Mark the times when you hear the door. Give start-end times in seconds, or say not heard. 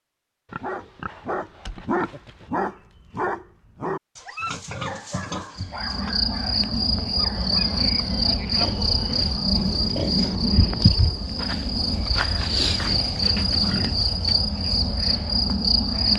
not heard.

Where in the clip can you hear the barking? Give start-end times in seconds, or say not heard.
0.6-7.8.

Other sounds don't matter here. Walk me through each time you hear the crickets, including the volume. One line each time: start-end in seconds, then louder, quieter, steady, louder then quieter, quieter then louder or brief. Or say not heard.
5.5-16.1 steady.